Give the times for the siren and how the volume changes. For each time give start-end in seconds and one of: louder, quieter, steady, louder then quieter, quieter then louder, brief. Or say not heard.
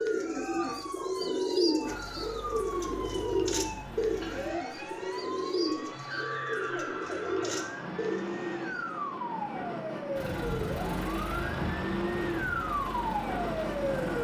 0.0-14.1 louder.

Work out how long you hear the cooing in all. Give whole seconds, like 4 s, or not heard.
9 s.